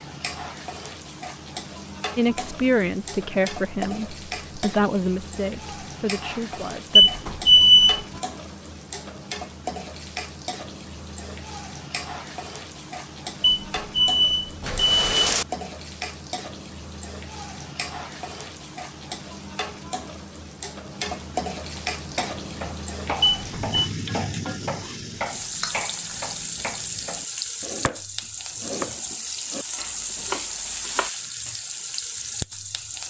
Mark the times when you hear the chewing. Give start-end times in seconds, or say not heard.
not heard.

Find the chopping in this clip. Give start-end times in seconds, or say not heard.
21.8-28.0, 28.6-31.6.